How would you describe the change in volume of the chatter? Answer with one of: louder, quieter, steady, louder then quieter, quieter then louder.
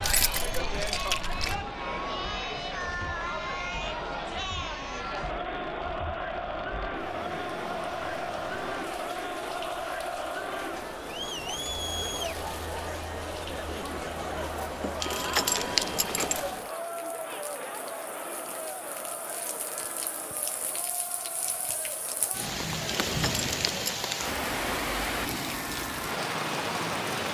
quieter.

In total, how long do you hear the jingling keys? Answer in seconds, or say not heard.
4 s.